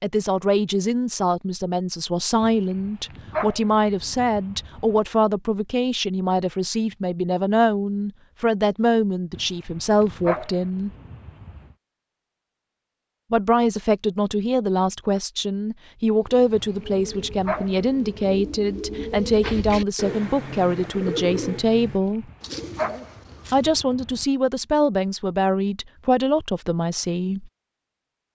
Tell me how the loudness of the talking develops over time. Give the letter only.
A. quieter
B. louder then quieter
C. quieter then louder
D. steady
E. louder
D.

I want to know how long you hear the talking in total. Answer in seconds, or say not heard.
24 s.